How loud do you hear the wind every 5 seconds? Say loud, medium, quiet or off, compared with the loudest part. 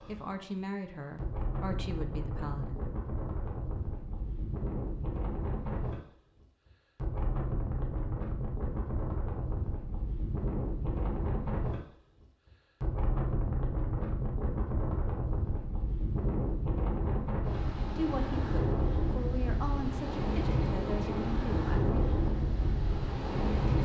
medium, medium, loud, loud, loud.